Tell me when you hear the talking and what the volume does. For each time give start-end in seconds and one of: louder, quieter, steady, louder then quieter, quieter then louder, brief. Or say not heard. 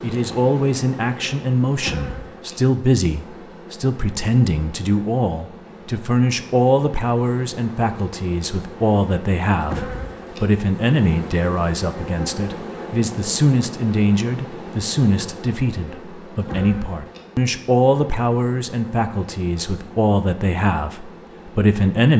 0.0-22.1 steady.